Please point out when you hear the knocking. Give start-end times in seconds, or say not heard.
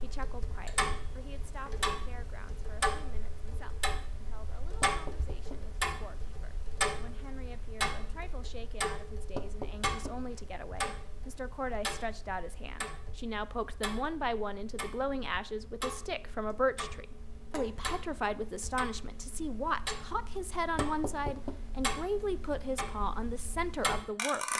4.8-5.8, 9.3-10.4, 20.8-21.6.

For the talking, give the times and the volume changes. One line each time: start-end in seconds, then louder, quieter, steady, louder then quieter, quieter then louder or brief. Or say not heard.
0.0-24.5 louder.